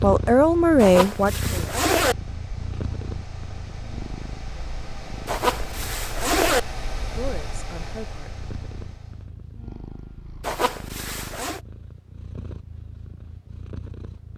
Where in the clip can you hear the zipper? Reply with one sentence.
You can hear the zipper from 0.8 to 2.1 s, from 5.2 to 6.6 s and from 10.4 to 11.6 s.